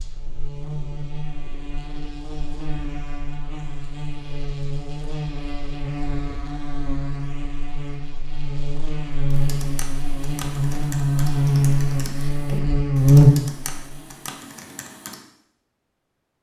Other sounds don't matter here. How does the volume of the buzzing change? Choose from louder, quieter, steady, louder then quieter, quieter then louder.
louder.